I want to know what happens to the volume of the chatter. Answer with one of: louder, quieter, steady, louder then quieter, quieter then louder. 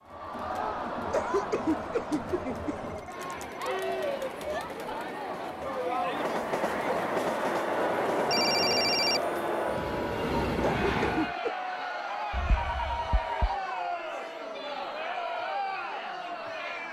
steady.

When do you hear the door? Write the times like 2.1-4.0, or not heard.
not heard.